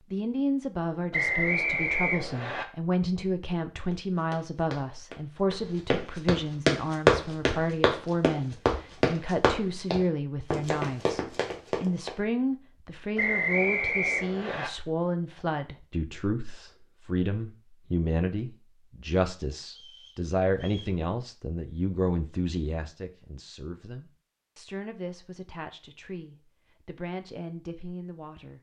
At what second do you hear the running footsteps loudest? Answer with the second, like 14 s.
7 s.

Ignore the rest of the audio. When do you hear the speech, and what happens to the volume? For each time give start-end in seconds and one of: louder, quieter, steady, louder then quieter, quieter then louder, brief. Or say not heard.
0.1-28.5 quieter.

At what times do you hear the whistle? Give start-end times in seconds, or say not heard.
1.1-2.6, 13.2-14.7, 19.6-20.9.